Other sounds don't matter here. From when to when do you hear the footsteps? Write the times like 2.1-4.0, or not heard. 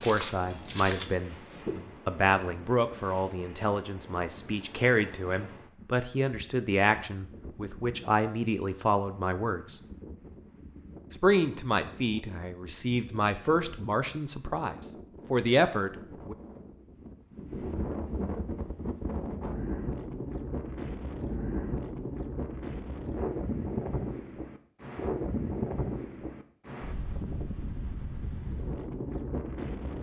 0.0-1.8.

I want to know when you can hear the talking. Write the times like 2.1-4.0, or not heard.
0.0-9.8, 11.1-16.4.